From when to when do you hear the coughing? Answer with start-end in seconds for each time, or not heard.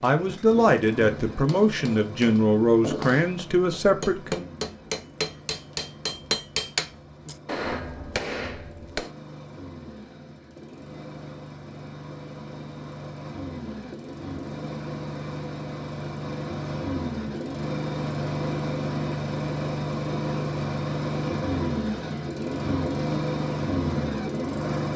not heard.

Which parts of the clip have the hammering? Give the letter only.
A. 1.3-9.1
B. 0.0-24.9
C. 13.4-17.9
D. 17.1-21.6
A.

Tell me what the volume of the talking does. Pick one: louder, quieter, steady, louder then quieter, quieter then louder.
steady.